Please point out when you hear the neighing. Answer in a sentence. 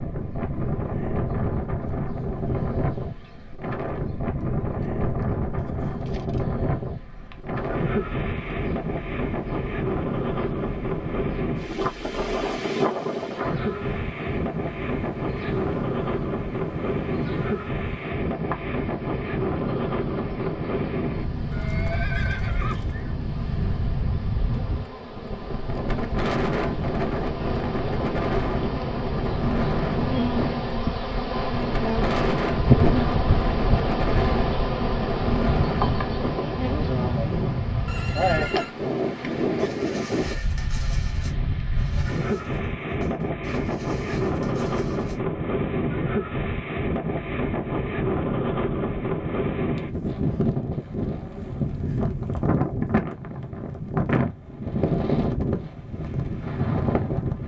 The neighing can be heard from 21.5 to 23.1 s and from 37.9 to 38.8 s.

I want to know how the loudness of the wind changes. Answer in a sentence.
The loudness of the wind stays about the same.